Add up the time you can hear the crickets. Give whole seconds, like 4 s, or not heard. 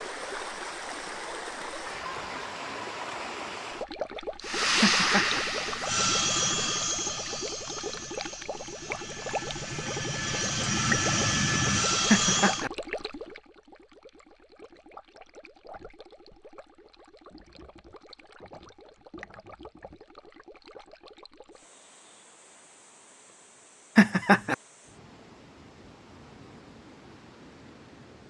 not heard.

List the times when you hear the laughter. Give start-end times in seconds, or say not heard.
4.8-5.4, 12.1-12.7, 23.9-24.6.